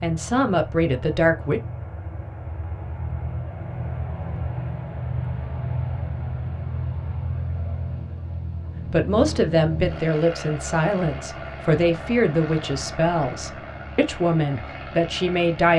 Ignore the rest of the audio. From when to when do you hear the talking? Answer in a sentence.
You can hear the talking from 0.0 to 1.6 s and from 8.9 to 15.7 s.